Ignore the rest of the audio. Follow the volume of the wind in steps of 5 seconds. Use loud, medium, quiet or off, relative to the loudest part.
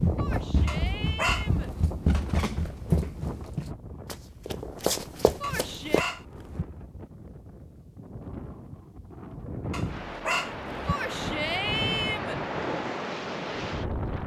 medium, medium, loud.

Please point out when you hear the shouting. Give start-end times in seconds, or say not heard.
0.1-1.7, 5.4-6.1, 10.8-12.4.